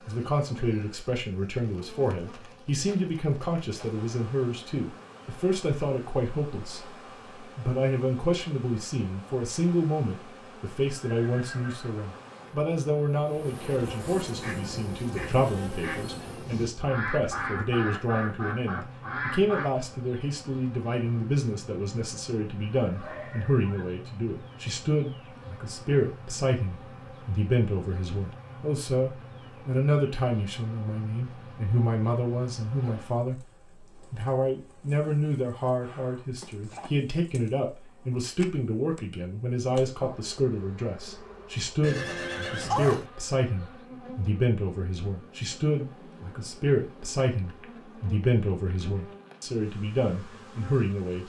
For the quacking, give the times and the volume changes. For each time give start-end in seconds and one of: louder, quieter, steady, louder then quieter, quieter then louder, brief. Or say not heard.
14.3-19.6 louder.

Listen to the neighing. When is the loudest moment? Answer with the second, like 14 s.
43 s.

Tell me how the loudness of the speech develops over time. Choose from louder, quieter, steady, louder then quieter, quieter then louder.
steady.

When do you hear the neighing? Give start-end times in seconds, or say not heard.
10.9-12.2, 22.8-24.1, 41.8-43.0.